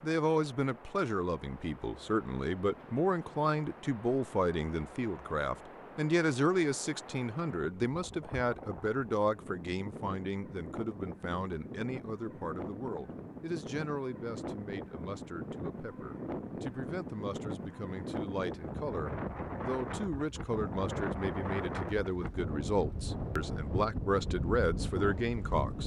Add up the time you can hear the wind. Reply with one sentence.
The wind can be heard for 26 seconds in total.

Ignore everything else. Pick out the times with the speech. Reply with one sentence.
The speech can be heard from 0.0 to 25.8 s.